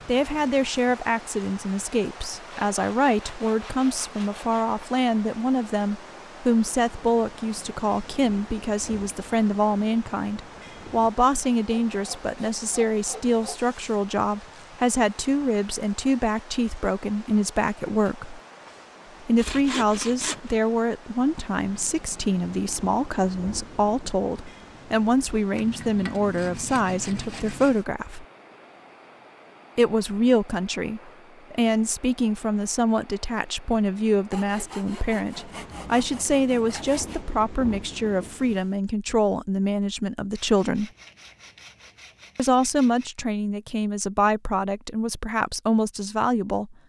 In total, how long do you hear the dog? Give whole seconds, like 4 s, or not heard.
not heard.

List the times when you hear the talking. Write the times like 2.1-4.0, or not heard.
0.1-18.4, 19.2-28.2, 29.8-40.9, 42.4-46.8.